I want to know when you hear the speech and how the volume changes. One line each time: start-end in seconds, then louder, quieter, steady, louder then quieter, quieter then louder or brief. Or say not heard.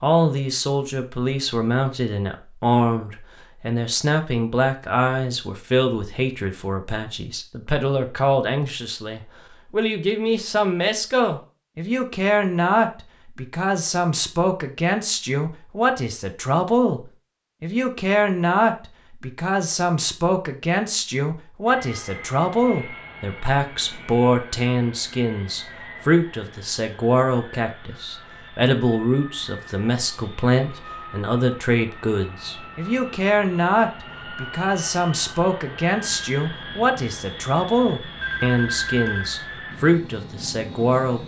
0.0-41.2 steady.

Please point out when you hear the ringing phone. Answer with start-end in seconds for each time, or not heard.
38.1-39.4.